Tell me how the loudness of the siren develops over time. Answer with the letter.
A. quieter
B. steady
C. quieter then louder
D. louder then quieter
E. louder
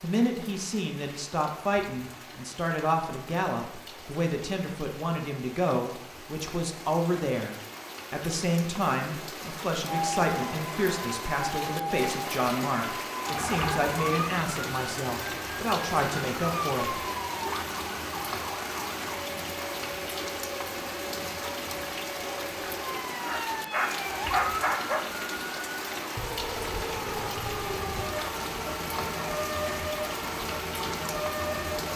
C.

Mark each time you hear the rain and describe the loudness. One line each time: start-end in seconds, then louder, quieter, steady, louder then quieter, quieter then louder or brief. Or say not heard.
0.0-31.9 louder.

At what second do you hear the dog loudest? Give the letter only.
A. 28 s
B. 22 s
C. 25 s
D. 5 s
C.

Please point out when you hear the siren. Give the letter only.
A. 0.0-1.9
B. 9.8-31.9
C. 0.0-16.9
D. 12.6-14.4
B.